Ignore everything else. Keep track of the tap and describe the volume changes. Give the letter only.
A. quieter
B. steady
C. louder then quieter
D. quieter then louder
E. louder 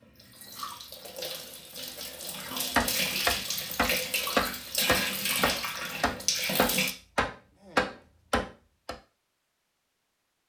E.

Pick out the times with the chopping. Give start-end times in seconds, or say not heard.
2.8-8.9.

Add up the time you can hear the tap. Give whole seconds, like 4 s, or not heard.
7 s.